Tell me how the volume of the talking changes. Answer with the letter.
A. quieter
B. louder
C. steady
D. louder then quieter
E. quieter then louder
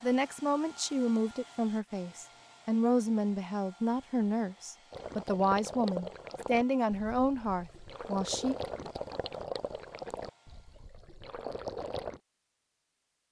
C.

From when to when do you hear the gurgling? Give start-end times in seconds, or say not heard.
4.9-12.2.